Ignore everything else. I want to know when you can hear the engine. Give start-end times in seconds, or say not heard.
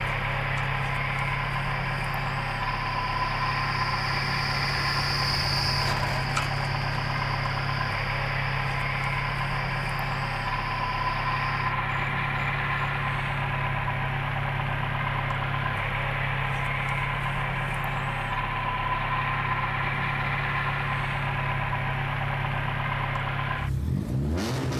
0.0-24.7.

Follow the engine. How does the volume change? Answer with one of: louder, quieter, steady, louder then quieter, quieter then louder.
steady.